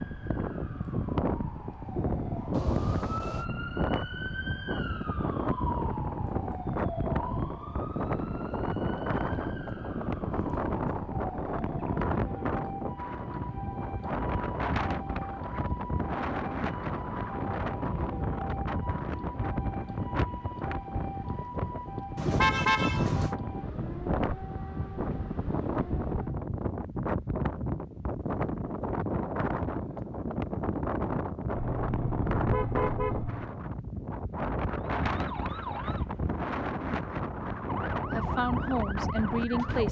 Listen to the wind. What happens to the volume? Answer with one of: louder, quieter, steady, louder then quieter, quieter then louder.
steady.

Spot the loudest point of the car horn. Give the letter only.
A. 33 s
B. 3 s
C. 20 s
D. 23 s
D.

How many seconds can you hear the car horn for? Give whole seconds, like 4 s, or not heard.
4 s.